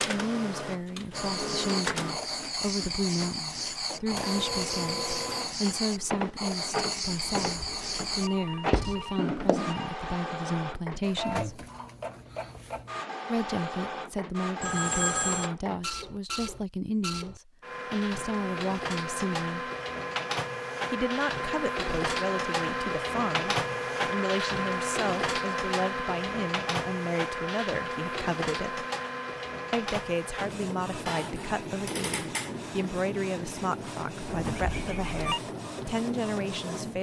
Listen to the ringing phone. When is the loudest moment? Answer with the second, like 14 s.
15 s.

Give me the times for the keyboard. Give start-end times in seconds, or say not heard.
not heard.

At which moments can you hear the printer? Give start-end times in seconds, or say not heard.
0.0-36.9.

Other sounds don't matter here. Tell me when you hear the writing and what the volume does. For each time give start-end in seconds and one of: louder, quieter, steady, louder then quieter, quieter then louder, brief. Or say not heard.
1.1-9.8 steady.